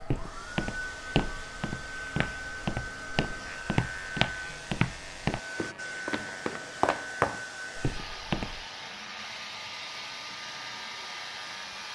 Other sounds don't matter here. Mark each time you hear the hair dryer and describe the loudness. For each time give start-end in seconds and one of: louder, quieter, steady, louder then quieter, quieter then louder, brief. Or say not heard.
0.0-11.9 steady.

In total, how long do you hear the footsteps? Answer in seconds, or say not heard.
9 s.